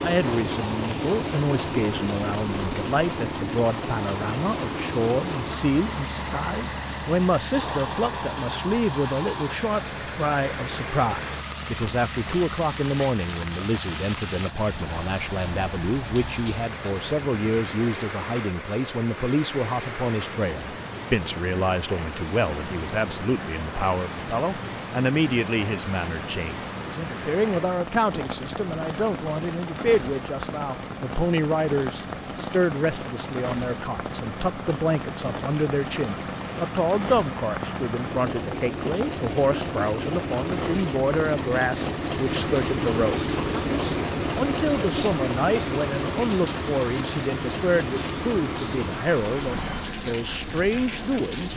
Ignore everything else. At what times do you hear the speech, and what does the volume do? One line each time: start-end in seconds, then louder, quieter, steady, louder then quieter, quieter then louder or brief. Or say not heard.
0.0-51.5 steady.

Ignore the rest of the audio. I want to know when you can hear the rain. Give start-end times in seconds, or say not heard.
0.0-51.5.